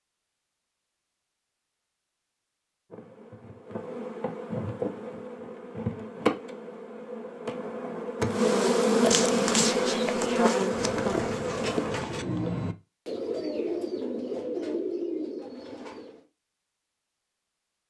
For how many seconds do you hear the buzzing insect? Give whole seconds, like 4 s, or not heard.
9 s.